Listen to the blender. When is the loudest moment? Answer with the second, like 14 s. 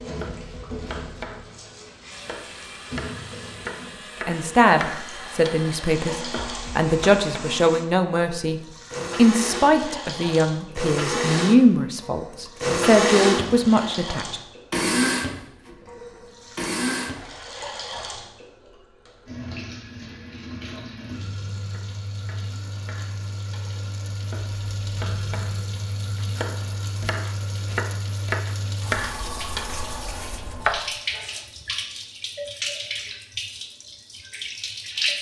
13 s.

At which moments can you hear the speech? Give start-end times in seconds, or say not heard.
4.2-14.4.